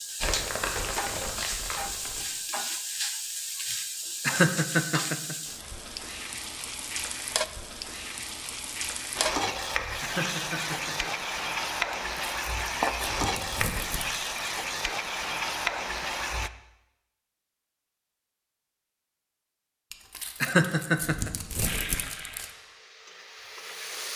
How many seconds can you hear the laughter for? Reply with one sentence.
You can hear the laughter for 3 seconds altogether.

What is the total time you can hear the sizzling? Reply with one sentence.
You can hear the sizzling for 19 seconds altogether.